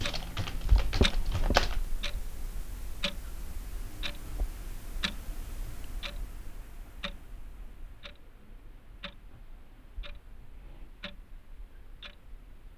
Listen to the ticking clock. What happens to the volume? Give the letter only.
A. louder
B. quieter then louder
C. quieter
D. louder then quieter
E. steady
C.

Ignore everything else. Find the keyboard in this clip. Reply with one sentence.
You can hear the keyboard from 0.0 to 1.8 s.